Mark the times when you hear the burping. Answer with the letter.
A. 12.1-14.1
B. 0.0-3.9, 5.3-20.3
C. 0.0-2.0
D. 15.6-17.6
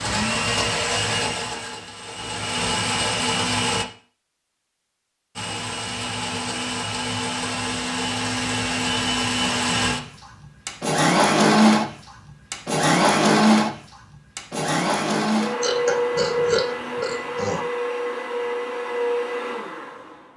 D.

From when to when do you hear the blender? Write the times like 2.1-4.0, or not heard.
0.0-3.9, 5.3-20.3.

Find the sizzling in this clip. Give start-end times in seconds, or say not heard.
not heard.